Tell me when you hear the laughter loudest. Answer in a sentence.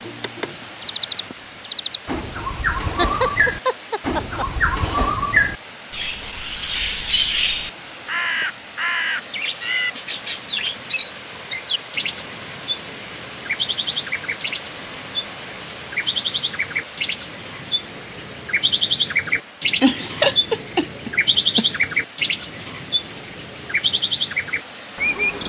The loudest moment of the laughter is at 20 seconds.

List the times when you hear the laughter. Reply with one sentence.
The laughter can be heard from 2.9 to 5.2 s and from 19.8 to 21.9 s.